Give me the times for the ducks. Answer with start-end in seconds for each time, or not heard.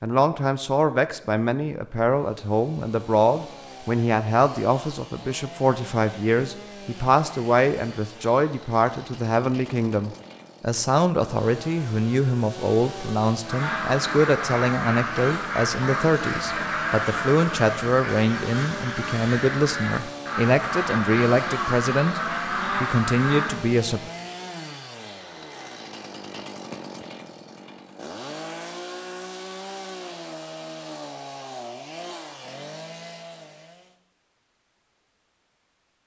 13.4-23.6.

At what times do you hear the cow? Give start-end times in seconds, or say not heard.
not heard.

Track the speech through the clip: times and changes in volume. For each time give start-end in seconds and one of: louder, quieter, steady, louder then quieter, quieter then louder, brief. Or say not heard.
0.0-24.0 steady.